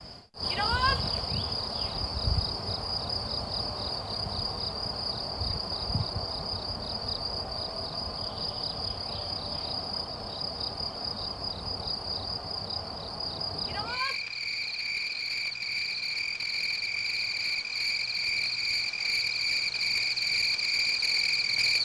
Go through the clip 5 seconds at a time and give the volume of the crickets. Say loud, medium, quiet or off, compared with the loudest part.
medium, medium, medium, loud, loud.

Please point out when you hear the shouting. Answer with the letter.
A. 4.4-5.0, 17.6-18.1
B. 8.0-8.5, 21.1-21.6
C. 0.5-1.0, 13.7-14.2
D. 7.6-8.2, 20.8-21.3
C.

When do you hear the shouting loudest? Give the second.
1 s.